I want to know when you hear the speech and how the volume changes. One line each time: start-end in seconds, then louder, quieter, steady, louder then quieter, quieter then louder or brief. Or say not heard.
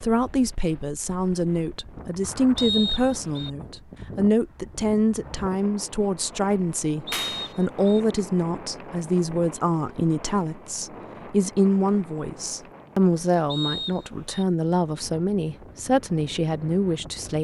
0.0-17.3 steady.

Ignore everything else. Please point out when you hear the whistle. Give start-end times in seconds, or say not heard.
2.5-3.5, 7.0-8.0, 13.4-14.4.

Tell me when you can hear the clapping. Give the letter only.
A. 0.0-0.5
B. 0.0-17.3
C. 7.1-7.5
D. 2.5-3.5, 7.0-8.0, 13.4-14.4
C.